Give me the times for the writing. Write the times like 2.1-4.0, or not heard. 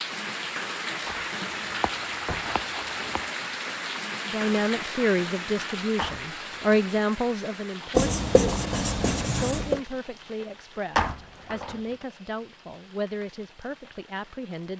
1.4-3.3, 8.0-9.8.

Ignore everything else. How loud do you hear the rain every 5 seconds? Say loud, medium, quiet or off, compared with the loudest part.
loud, medium, quiet.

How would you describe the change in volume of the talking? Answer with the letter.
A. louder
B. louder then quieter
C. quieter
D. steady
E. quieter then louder
C.